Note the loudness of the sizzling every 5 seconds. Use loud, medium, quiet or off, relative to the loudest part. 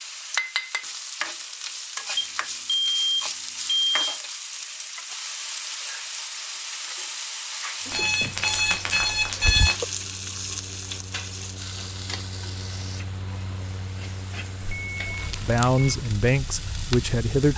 loud, loud, medium, medium.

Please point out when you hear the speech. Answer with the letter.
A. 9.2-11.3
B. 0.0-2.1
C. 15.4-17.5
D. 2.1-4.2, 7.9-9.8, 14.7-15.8
C.